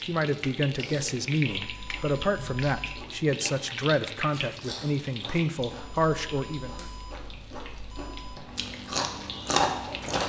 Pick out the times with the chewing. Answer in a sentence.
The chewing can be heard from 0.0 to 10.2 s.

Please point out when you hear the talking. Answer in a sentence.
The talking can be heard from 0.0 to 6.8 s.